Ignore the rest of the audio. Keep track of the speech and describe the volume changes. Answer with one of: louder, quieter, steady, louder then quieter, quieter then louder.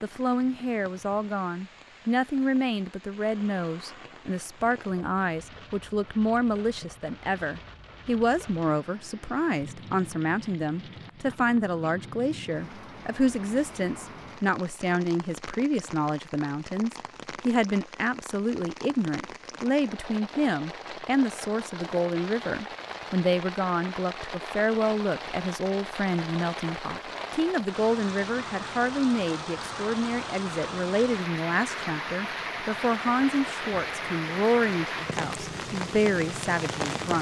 steady.